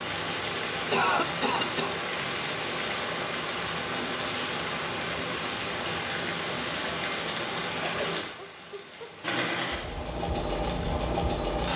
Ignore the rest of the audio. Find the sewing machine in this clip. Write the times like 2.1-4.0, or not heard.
9.2-11.7.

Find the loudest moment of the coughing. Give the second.
1 s.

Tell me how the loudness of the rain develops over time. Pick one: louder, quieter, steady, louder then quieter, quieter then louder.
quieter.